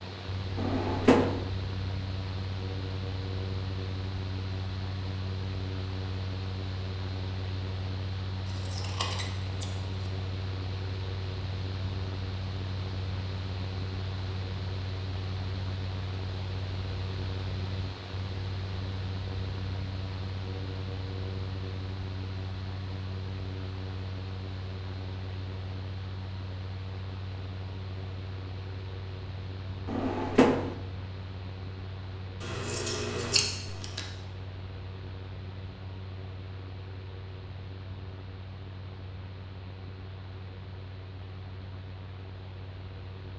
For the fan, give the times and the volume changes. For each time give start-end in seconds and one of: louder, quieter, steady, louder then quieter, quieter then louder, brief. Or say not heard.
0.0-43.3 quieter.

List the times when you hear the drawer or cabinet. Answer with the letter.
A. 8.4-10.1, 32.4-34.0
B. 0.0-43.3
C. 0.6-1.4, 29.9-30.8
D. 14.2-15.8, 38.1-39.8
C.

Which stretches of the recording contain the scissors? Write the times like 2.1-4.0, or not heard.
8.4-10.1, 32.4-34.0.